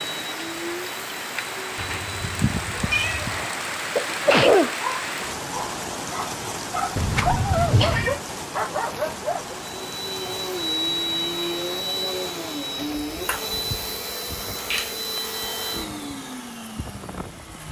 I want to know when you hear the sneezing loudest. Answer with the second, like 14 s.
4 s.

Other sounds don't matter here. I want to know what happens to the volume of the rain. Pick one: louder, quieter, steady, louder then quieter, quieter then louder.
quieter.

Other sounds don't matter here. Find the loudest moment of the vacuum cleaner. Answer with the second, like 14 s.
11 s.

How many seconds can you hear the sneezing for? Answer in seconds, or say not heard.
2 s.